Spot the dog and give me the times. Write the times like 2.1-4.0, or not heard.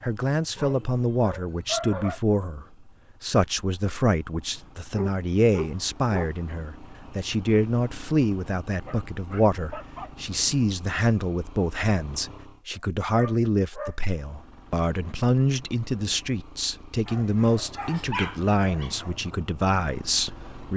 0.6-2.2, 5.0-6.3, 8.8-10.1, 12.7-14.0, 17.1-19.1.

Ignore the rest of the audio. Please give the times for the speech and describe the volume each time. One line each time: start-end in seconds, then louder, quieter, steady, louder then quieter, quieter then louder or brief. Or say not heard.
0.0-20.7 steady.